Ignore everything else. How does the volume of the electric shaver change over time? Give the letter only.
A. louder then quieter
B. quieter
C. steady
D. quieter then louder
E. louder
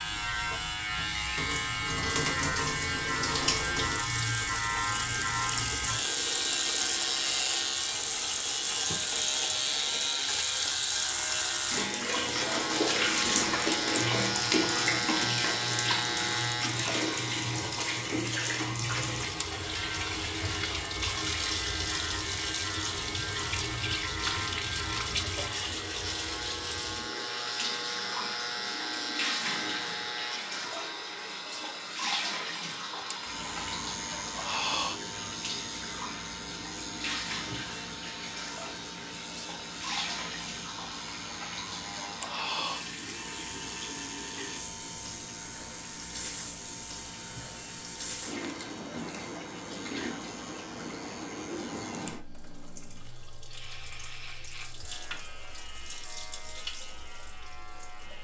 B.